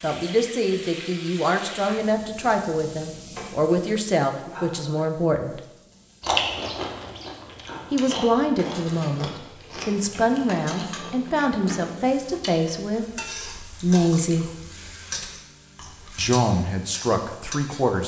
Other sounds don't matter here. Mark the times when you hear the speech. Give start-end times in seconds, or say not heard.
0.0-5.6, 7.9-14.5, 16.1-18.0.